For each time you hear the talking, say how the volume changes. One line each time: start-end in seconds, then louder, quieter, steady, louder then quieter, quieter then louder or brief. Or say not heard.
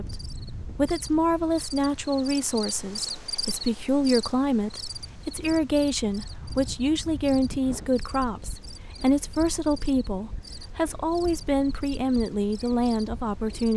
0.0-13.7 steady.